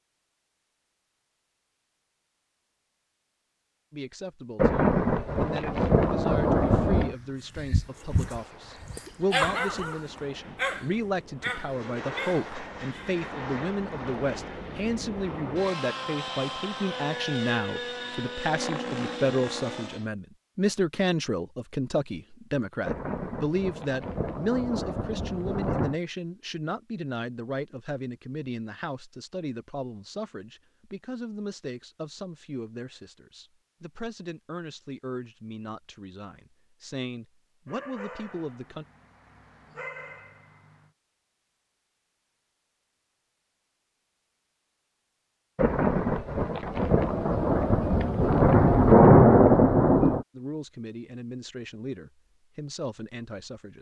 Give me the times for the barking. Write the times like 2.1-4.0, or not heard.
7.5-13.2, 37.6-40.9.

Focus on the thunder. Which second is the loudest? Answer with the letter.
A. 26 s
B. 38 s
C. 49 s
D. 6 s
C.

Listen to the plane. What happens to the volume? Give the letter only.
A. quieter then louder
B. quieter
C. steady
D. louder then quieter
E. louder
E.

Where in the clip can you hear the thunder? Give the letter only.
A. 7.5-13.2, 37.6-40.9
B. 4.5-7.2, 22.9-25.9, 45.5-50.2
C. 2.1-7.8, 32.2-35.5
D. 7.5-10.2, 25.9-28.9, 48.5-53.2
B.